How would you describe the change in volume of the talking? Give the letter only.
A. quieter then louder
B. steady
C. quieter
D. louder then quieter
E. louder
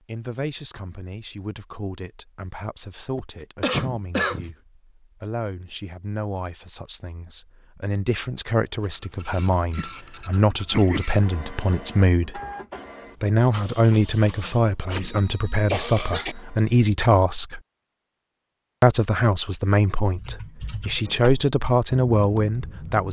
E.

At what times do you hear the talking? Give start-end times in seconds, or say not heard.
0.1-12.4, 13.2-17.6, 18.8-23.0.